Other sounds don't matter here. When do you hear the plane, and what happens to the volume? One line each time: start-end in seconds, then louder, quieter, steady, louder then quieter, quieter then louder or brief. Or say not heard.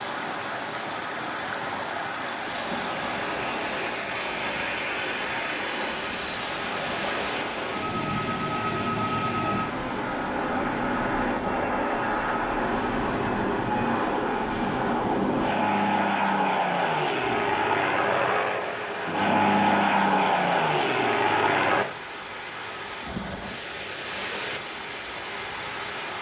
2.5-21.9 louder.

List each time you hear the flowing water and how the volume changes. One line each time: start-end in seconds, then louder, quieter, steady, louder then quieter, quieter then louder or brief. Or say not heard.
0.0-26.1 quieter then louder.